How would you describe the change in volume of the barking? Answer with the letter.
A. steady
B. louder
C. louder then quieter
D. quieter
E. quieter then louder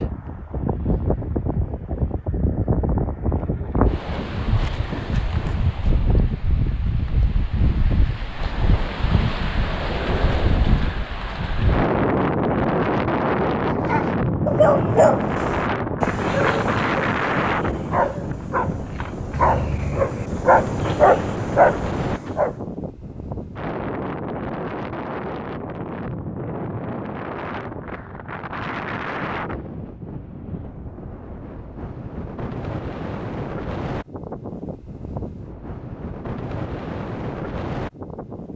E.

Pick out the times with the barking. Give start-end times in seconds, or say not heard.
13.6-22.6.